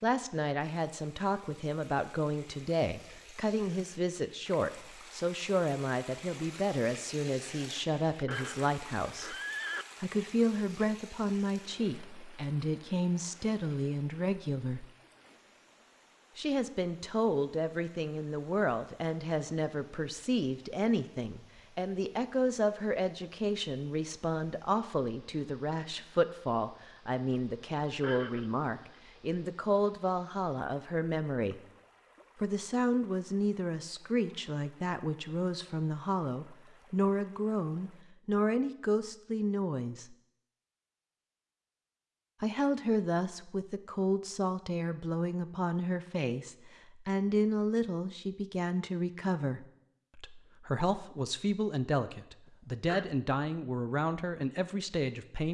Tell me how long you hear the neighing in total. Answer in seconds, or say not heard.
3 s.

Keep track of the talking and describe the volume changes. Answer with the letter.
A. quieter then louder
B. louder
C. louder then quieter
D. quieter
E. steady
E.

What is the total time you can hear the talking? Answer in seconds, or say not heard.
50 s.